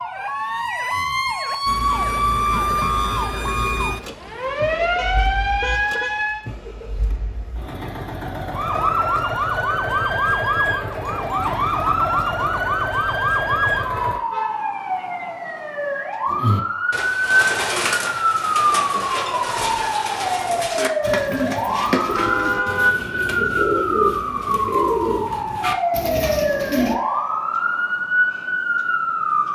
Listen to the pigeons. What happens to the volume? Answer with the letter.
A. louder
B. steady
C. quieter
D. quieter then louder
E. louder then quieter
B.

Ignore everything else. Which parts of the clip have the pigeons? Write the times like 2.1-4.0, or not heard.
16.2-26.9.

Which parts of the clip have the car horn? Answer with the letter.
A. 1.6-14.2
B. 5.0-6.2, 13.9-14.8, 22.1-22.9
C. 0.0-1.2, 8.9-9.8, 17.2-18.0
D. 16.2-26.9
B.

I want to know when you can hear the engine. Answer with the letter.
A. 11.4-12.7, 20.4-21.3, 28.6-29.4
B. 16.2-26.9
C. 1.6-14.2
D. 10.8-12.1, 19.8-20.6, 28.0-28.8
C.